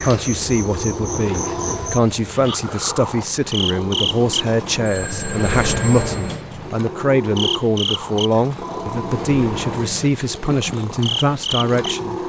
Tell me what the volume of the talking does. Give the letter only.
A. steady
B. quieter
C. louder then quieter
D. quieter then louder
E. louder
A.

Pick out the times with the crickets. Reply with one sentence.
The crickets can be heard from 0.0 to 12.2 s.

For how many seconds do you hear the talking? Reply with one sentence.
You can hear the talking for 12 seconds altogether.